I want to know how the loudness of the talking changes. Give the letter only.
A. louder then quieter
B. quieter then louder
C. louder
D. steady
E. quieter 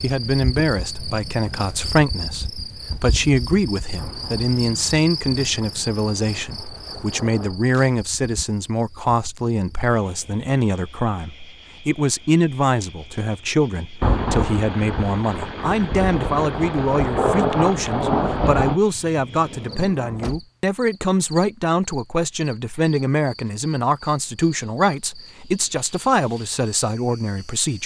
D.